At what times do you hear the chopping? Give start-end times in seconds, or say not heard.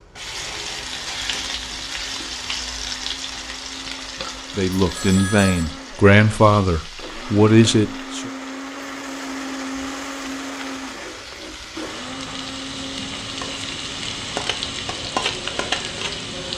not heard.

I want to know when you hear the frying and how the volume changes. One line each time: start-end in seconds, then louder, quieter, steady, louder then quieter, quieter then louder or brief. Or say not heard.
0.0-16.5 quieter then louder.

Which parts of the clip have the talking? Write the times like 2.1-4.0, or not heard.
4.5-8.3.